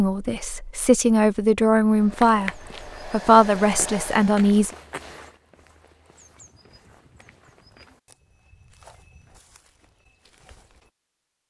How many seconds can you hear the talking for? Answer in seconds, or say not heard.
5 s.